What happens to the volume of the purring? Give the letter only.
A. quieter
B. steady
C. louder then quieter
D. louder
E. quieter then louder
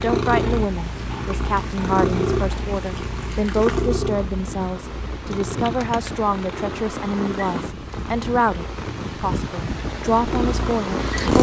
E.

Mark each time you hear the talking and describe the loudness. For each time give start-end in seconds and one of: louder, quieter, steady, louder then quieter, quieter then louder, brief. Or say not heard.
0.0-11.3 steady.